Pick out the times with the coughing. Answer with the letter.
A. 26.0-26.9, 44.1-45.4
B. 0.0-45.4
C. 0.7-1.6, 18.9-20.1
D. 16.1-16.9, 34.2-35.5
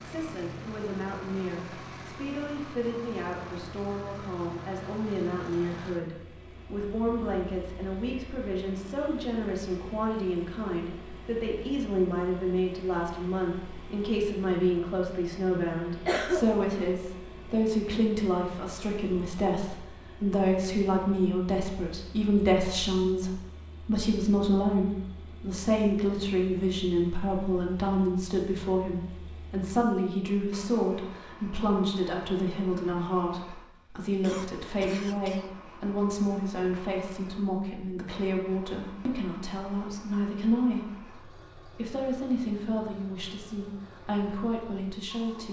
D.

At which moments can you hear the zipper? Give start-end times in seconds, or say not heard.
not heard.